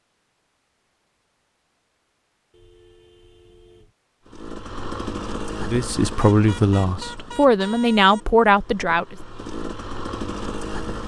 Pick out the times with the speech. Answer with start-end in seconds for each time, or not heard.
5.6-9.2.